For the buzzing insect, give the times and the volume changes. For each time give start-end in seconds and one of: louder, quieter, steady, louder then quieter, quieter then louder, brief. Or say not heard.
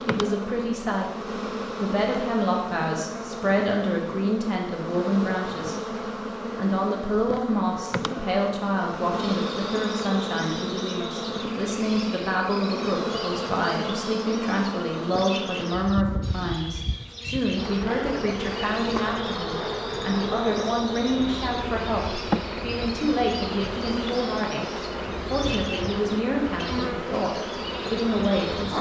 0.0-28.7 steady.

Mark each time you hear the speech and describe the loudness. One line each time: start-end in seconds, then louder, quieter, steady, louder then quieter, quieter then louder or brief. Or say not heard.
0.1-28.7 steady.